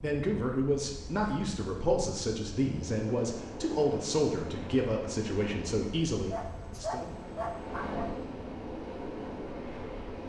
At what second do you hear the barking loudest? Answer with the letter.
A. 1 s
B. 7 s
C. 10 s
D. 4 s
B.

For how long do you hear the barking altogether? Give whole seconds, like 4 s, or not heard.
2 s.